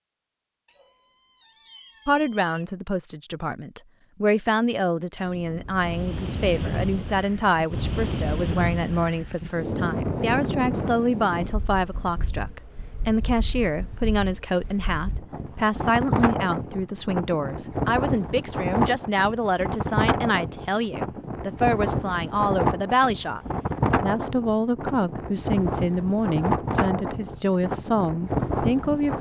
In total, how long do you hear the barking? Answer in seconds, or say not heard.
not heard.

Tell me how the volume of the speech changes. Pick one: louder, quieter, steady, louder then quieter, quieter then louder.
steady.